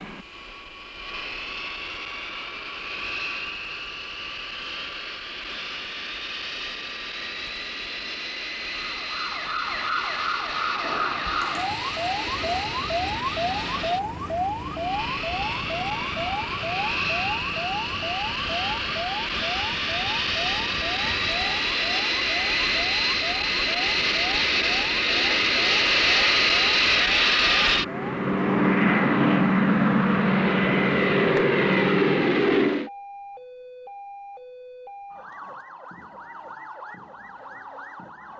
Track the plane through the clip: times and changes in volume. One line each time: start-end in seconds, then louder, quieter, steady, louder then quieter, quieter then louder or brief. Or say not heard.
0.0-32.9 louder.